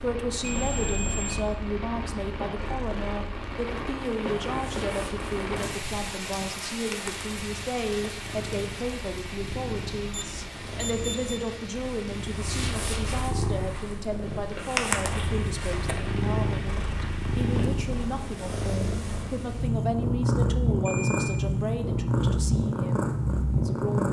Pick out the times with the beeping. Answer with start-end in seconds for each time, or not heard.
0.4-1.6, 10.1-11.4, 20.9-21.4.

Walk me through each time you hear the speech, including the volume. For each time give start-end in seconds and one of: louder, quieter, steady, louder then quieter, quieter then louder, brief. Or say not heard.
0.0-24.0 steady.